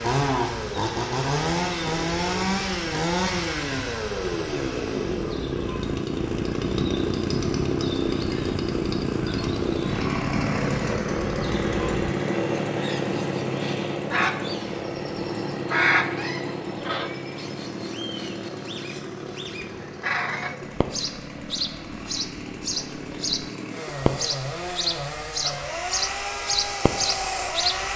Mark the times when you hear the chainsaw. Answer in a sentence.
You can hear the chainsaw from 0.0 to 27.9 s.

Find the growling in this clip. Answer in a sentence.
You can't hear the growling here.